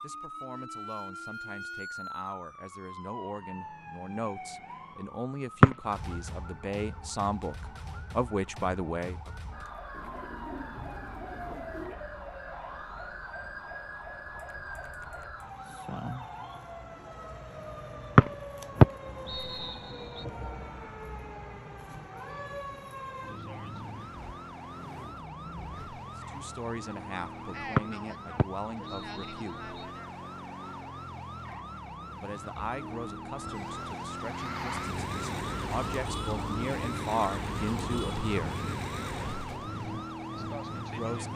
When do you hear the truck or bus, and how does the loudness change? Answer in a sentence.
You can hear the truck or bus from 34.2 to 39.6 s, at a steady volume.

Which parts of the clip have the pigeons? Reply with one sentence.
You can hear the pigeons from 9.9 to 11.9 s.